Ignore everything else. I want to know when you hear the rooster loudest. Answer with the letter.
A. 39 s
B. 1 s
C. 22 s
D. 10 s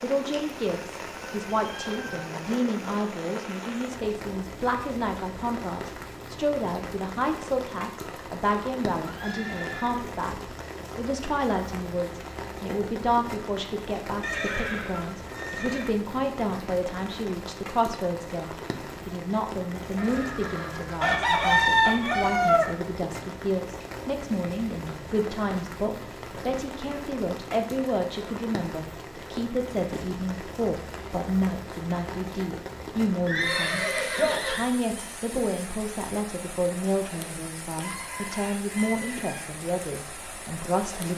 C.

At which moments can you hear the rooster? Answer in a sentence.
The rooster can be heard from 0.3 to 2.2 s, from 19.9 to 22.8 s and from 37.8 to 39.5 s.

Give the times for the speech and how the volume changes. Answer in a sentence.
You can hear the speech from 0.0 to 41.1 s, at a steady volume.